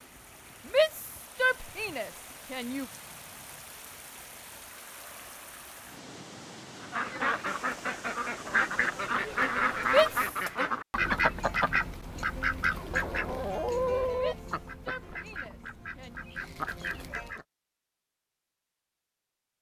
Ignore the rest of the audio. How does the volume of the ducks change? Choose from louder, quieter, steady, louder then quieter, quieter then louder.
quieter.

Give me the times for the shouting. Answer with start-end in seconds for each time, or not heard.
0.7-2.9, 9.8-10.7, 14.1-16.2.